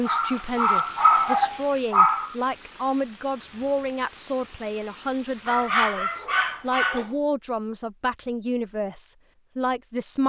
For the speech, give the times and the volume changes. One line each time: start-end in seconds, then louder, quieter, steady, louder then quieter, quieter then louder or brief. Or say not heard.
0.0-10.2 steady.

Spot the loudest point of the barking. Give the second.
1 s.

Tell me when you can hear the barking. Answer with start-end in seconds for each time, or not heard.
0.1-2.4, 5.5-7.1.